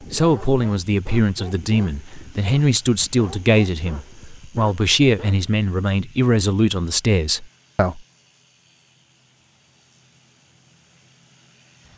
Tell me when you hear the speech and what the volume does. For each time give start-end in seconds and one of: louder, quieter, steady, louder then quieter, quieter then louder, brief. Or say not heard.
0.1-8.0 steady.